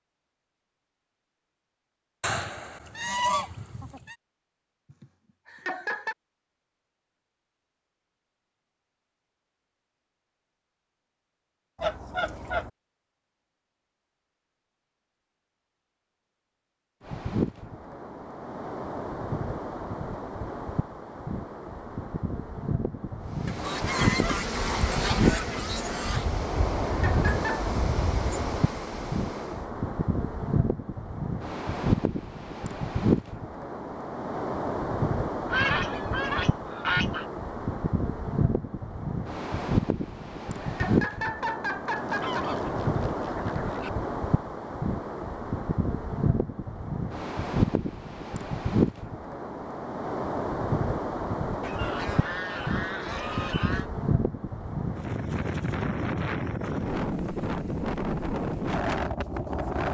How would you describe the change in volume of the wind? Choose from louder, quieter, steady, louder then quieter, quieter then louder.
steady.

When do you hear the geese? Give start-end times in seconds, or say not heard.
2.2-4.2, 11.8-12.7, 23.4-26.3, 35.5-37.2, 42.0-43.9, 51.6-53.9.